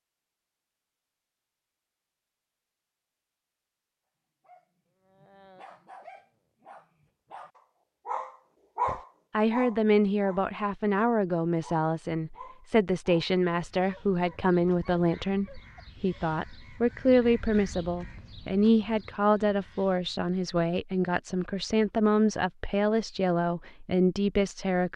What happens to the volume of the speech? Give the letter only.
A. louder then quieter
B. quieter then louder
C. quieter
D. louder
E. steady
E.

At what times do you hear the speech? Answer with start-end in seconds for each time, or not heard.
8.8-24.9.